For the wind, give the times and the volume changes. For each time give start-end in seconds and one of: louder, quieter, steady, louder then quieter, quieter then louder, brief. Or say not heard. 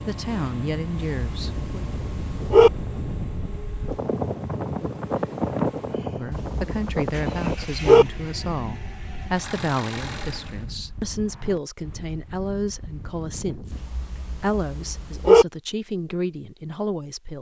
0.0-13.8 louder then quieter.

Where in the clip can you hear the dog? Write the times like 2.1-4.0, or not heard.
1.1-2.7, 6.3-8.1, 13.7-15.4.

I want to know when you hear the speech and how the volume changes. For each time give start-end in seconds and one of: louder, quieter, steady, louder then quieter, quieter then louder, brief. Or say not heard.
0.0-1.8 brief
6.1-17.3 steady.